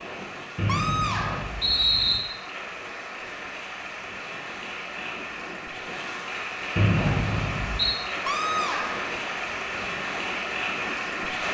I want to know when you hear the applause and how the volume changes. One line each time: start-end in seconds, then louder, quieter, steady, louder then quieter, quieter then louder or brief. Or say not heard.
0.0-11.4 louder.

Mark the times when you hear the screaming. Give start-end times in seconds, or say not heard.
0.7-1.6, 8.2-9.1.